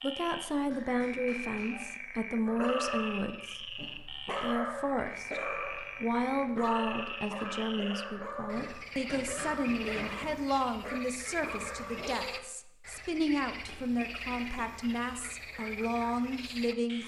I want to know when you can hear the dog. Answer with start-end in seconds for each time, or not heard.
2.5-12.4.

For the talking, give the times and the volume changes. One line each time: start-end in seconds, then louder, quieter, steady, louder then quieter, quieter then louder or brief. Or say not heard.
0.0-17.0 steady.